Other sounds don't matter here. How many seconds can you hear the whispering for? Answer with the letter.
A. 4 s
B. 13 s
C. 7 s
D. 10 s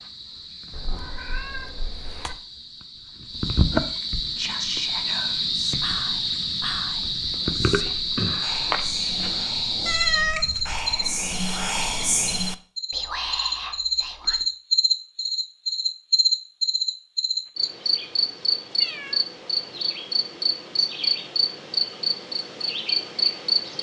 D.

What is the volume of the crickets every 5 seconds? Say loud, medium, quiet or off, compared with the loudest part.
medium, loud, loud, loud, loud.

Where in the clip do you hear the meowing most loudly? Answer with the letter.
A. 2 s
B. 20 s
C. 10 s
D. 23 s
C.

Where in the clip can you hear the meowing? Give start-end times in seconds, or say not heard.
0.7-2.4, 9.8-10.9, 18.8-19.2.